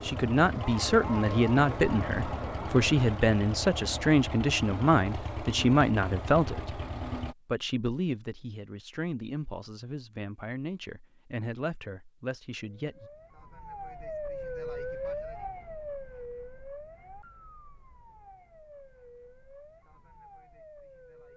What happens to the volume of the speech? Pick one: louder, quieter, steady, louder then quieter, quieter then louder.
quieter.